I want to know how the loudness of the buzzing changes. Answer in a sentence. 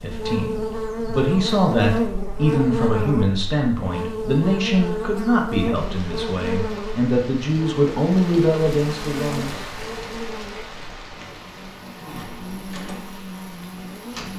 The loudness of the buzzing goes down.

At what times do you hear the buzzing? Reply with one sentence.
You can hear the buzzing from 0.0 to 14.3 s.